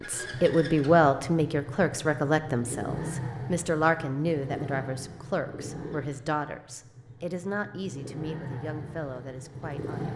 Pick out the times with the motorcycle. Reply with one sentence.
You can hear the motorcycle from 0.0 to 10.1 s.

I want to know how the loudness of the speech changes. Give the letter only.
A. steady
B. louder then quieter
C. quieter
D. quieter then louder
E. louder
C.